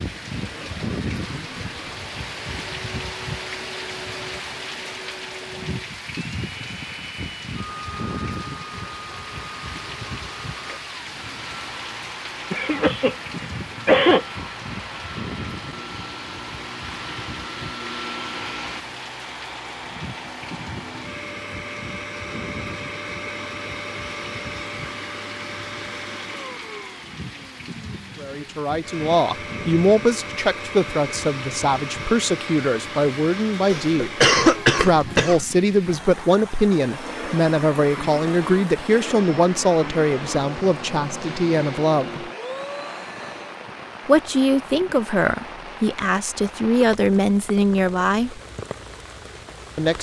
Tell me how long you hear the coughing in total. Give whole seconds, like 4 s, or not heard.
3 s.